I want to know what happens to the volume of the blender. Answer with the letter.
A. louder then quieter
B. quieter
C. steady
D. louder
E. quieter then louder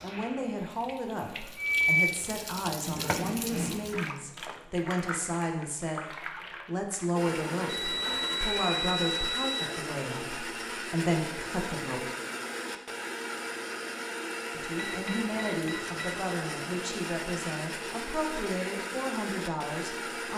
C.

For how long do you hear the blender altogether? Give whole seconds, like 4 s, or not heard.
13 s.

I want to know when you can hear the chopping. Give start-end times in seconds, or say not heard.
not heard.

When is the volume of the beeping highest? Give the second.
2 s.